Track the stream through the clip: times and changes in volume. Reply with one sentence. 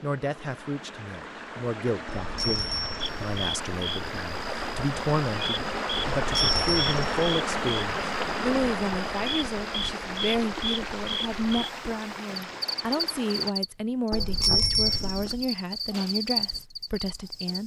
The stream can be heard from 0.0 to 13.6 s, getting louder then quieter.